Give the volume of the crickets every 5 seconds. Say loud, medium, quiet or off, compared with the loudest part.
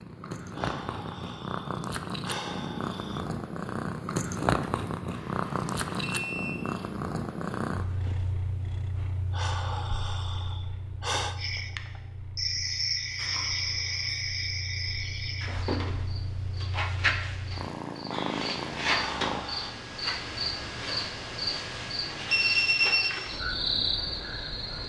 off, off, loud, loud, loud.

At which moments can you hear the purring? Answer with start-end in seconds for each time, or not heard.
0.0-19.4.